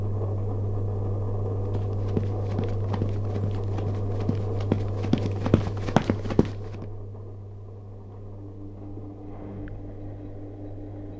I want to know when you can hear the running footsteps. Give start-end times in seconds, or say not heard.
1.8-6.8.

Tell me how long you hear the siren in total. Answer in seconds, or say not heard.
not heard.